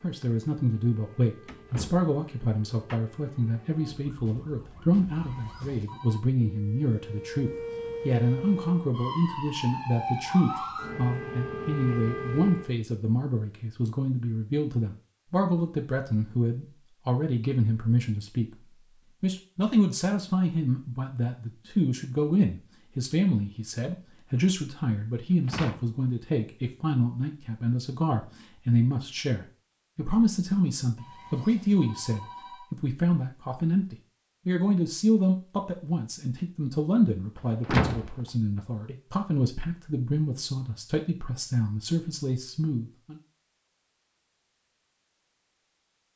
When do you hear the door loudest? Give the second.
38 s.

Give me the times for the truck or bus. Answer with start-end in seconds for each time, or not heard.
not heard.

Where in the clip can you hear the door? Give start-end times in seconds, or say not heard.
1.4-3.0, 25.4-25.9, 37.6-38.1.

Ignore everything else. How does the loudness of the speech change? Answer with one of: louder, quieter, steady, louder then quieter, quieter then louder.
steady.